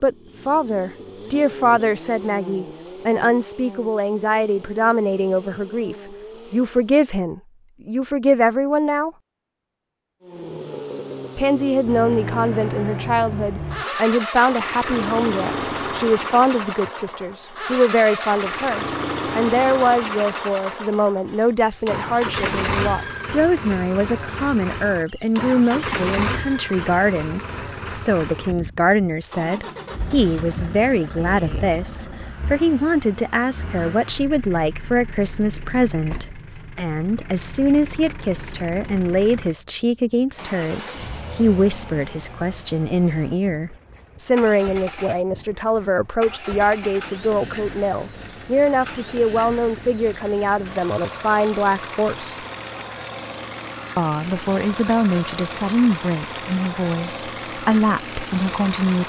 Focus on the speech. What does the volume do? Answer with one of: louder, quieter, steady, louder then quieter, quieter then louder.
steady.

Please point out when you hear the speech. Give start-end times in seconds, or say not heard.
0.0-9.1, 11.3-52.4, 54.0-59.0.